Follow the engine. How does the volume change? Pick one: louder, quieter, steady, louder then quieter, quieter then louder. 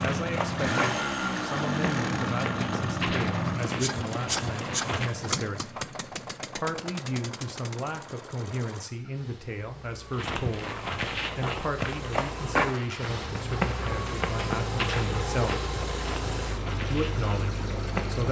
quieter then louder.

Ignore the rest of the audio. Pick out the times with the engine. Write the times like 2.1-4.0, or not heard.
0.0-18.2.